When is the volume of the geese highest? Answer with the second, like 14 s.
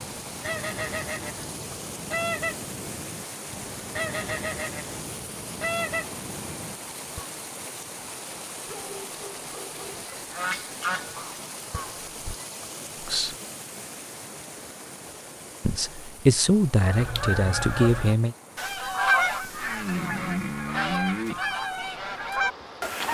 19 s.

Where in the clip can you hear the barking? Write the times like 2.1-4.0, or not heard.
8.7-10.1.